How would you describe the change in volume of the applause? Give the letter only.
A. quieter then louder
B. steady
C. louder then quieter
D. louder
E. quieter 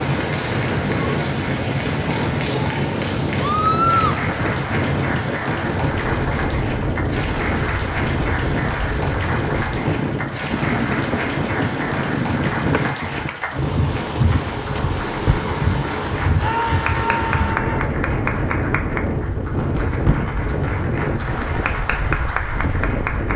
B.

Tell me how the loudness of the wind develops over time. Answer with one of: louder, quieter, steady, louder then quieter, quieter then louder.
steady.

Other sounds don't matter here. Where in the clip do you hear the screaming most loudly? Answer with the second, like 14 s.
4 s.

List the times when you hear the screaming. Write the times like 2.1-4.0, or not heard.
3.4-4.2, 16.4-17.9.